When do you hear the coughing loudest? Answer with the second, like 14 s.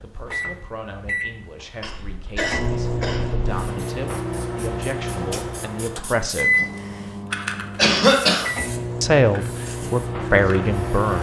8 s.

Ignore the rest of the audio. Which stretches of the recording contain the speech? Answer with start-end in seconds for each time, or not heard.
0.0-6.5, 9.0-11.1.